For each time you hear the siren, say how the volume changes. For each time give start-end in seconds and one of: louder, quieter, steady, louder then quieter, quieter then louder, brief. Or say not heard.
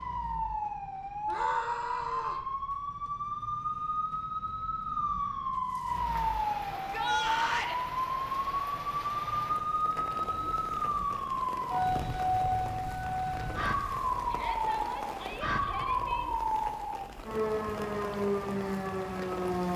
0.0-19.7 steady.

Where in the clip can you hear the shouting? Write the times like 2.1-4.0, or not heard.
1.2-2.5, 6.8-7.8, 14.2-16.2.